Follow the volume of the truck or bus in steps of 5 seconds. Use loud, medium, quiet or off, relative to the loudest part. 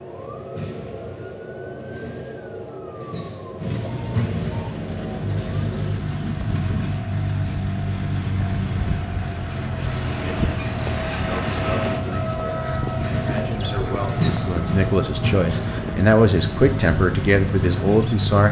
medium, loud, loud, loud.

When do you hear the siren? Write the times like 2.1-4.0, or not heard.
0.0-18.4.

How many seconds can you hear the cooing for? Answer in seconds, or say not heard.
not heard.